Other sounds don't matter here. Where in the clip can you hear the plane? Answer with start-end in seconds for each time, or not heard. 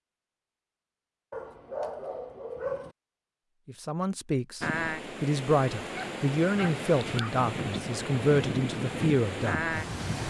not heard.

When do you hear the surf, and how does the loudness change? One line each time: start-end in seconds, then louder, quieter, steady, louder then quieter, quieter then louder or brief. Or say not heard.
4.6-10.2 louder.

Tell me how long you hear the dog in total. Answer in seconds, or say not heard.
3 s.